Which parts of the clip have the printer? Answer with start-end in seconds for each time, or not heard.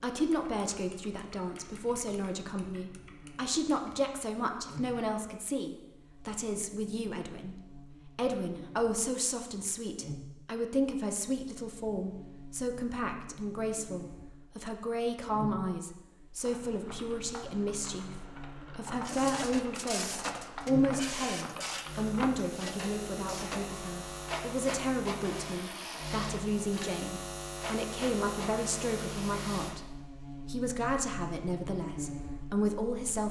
19.1-29.8.